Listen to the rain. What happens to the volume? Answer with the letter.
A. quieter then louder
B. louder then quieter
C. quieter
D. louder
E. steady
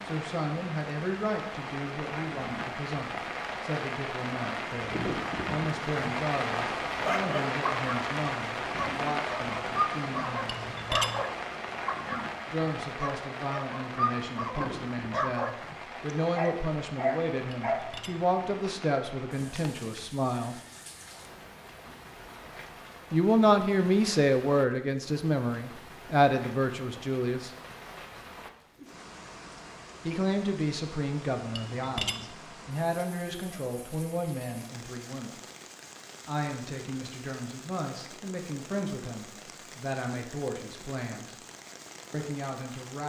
C.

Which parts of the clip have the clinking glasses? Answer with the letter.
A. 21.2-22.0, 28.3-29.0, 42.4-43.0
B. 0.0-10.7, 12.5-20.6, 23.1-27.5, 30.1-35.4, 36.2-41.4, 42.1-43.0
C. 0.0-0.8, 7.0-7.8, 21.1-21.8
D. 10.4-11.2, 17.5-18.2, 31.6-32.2
D.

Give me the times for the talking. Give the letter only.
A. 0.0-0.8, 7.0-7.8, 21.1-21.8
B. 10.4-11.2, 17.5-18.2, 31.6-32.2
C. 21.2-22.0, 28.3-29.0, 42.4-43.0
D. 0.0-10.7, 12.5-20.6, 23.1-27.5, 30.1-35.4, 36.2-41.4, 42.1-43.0
D.